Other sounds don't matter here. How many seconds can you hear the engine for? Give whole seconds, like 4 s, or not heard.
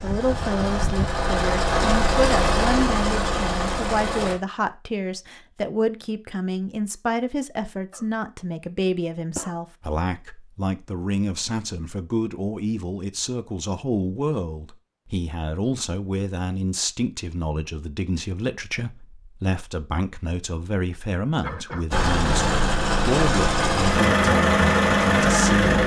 8 s.